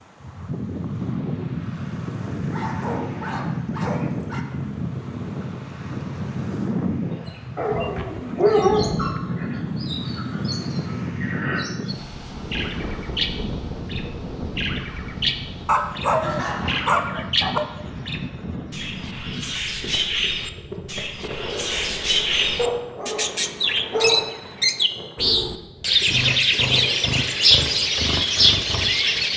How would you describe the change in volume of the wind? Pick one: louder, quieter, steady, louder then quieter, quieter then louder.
quieter.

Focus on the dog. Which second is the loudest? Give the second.
9 s.